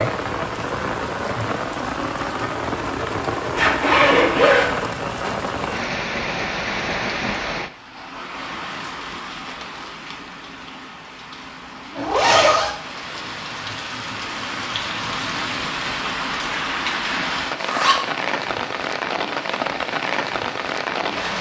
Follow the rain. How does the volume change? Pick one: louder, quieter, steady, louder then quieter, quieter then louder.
quieter then louder.